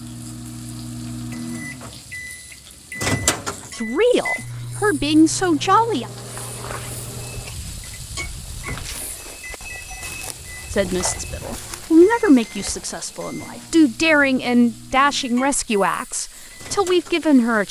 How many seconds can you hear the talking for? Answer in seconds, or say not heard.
9 s.